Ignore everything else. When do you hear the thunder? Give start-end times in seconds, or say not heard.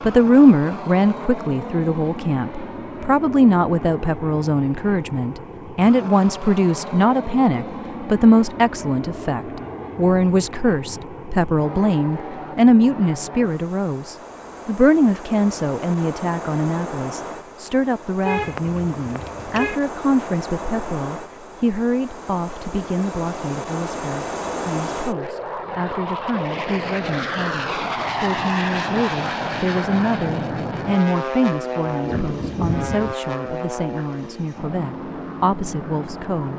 31.9-33.1.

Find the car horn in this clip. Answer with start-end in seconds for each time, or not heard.
18.2-19.8.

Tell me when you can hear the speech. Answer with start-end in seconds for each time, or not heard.
0.0-36.5.